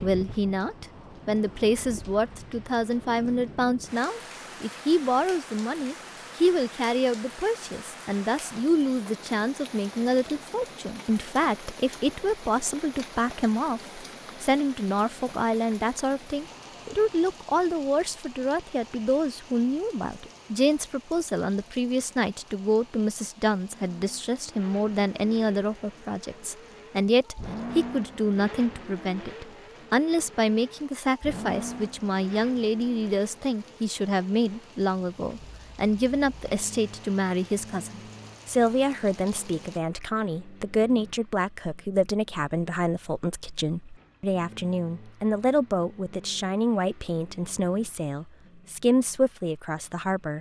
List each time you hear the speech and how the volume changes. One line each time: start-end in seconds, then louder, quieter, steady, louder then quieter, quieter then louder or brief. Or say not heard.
0.0-50.3 steady.